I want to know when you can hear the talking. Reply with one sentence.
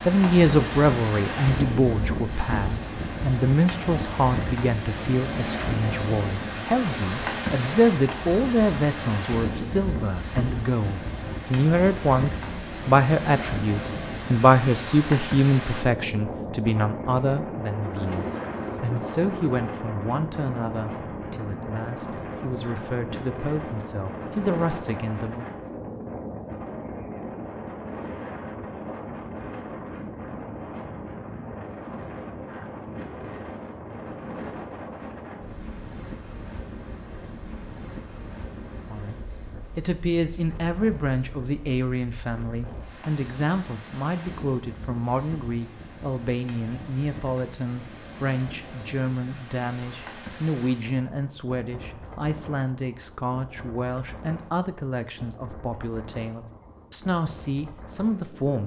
The talking can be heard from 0.0 to 25.5 s and from 38.9 to 58.6 s.